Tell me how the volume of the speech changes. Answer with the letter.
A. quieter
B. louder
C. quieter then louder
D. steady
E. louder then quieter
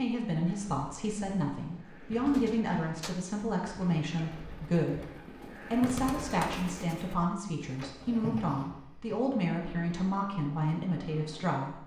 D.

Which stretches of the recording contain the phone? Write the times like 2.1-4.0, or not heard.
not heard.